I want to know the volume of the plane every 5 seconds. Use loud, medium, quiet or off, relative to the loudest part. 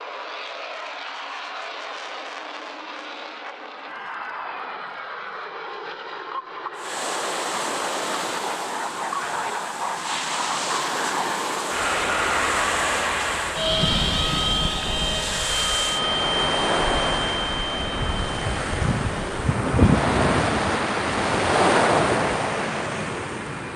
medium, medium, loud, loud, medium.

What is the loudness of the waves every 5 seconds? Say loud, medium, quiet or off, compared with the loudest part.
off, medium, medium, loud, loud.